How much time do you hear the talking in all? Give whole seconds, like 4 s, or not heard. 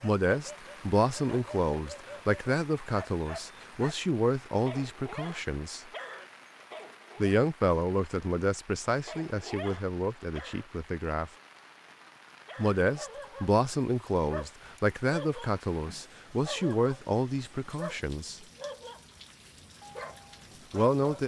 16 s.